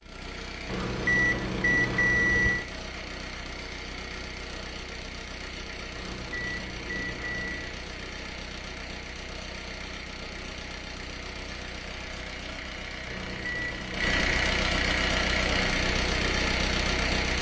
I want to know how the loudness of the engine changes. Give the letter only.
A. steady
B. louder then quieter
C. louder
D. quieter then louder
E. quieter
C.